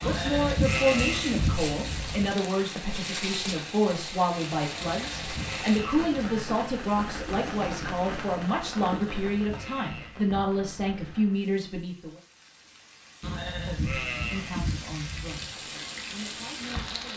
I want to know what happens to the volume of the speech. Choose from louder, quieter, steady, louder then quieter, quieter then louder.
quieter.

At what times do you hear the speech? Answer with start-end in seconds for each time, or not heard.
0.0-12.2, 13.7-17.1.